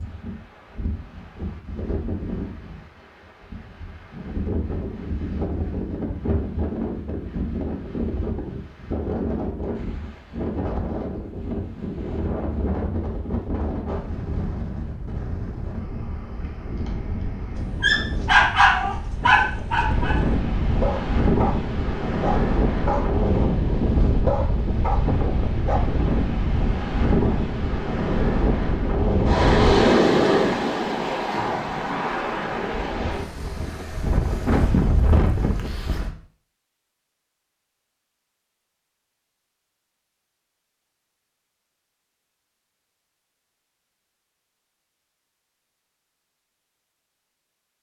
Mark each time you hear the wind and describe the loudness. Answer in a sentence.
You can hear the wind from 0.0 to 36.1 s, getting louder.